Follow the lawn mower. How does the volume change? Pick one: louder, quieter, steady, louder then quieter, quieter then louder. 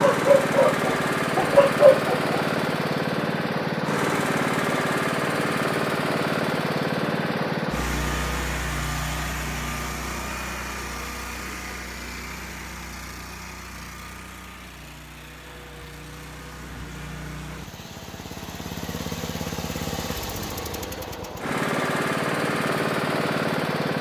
quieter then louder.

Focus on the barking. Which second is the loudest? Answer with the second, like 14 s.
2 s.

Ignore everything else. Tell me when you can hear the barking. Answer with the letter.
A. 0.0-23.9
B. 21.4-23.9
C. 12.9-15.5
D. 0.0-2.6
D.